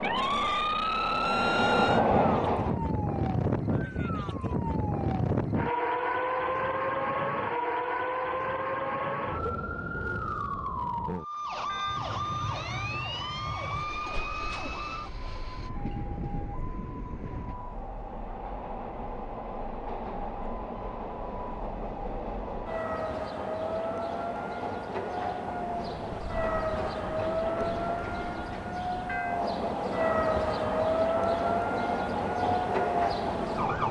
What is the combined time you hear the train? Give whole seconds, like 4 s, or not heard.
25 s.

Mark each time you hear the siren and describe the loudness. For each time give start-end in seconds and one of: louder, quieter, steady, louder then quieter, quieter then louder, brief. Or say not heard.
0.0-33.8 quieter then louder.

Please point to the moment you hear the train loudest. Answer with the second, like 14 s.
2 s.